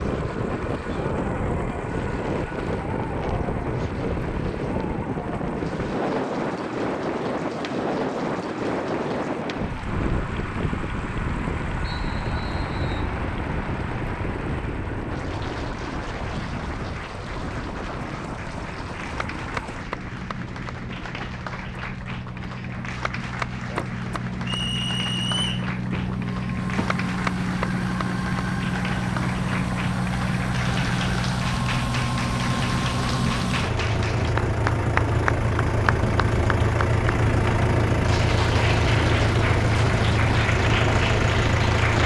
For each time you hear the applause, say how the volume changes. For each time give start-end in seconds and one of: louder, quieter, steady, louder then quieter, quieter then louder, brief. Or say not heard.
0.0-42.0 louder.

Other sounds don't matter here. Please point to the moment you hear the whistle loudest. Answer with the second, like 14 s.
25 s.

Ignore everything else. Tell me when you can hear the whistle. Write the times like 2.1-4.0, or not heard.
11.9-13.2, 24.4-25.6.